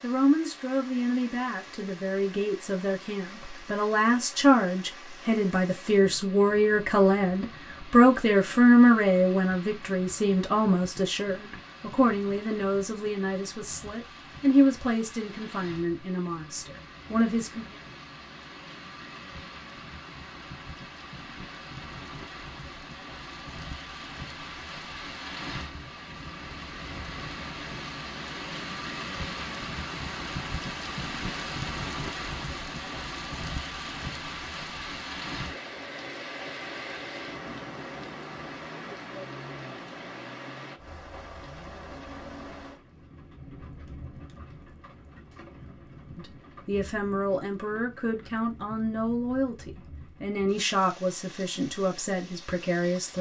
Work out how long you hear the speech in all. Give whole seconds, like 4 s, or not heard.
25 s.